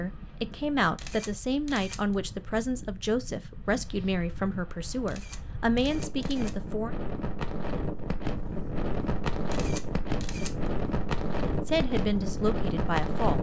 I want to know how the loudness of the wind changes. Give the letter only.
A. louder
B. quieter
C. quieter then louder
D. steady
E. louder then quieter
A.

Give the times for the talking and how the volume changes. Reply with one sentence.
You can hear the talking from 0.0 to 7.0 s, at a steady volume; and briefly from 11.7 to 13.3 s.